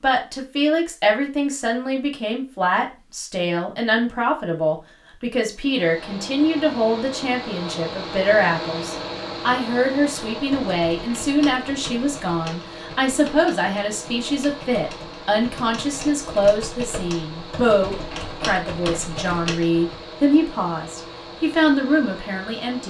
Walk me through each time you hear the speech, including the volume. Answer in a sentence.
The speech can be heard from 0.0 to 22.8 s, at a steady volume.